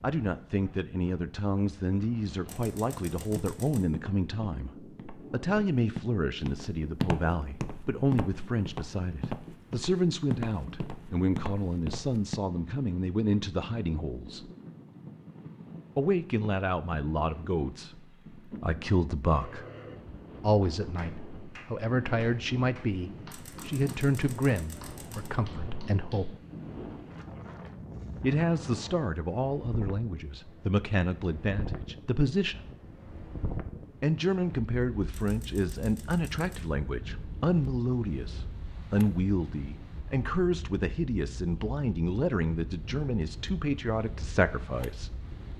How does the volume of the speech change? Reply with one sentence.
The volume of the speech stays about the same.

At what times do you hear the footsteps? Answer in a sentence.
The footsteps can be heard from 3.1 to 12.4 s.